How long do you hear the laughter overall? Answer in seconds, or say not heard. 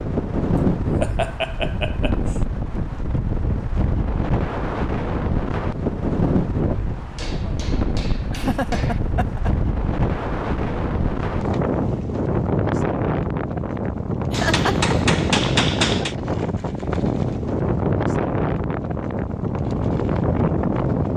5 s.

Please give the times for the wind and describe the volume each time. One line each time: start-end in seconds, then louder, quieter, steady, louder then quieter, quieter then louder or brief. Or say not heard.
0.0-21.1 steady.